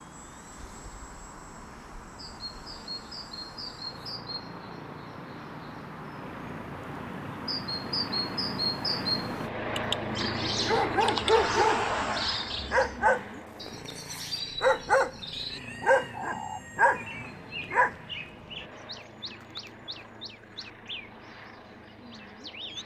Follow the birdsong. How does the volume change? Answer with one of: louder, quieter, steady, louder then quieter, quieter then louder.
louder then quieter.